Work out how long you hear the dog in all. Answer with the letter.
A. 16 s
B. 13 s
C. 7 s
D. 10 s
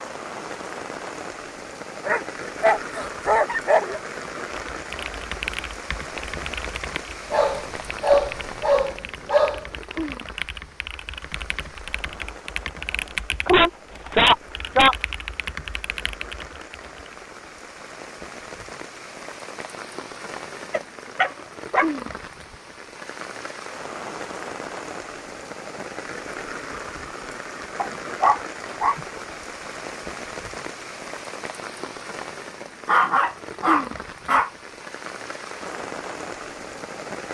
D.